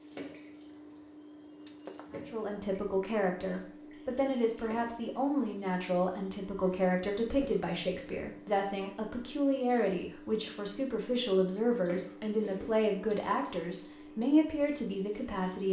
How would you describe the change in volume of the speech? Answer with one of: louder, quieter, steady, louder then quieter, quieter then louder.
steady.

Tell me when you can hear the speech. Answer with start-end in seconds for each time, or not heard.
2.1-15.6.